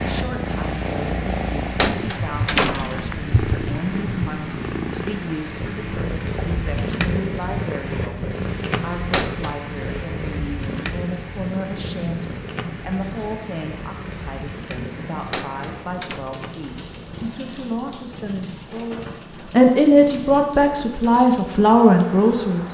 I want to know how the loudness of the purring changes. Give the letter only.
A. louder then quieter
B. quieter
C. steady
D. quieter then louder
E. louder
B.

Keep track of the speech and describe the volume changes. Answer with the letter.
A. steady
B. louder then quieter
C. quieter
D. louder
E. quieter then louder
D.